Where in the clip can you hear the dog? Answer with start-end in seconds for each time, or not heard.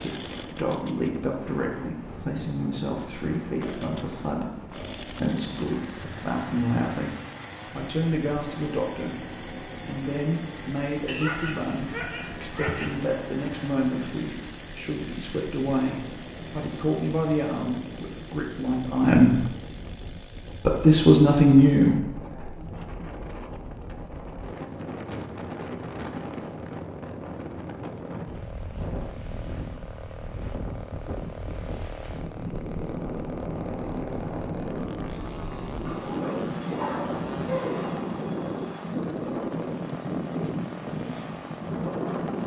11.1-13.0, 35.9-37.9.